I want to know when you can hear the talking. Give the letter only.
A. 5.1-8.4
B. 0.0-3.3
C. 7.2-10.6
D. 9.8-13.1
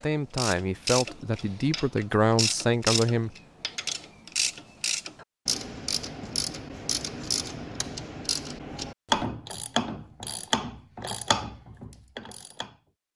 B.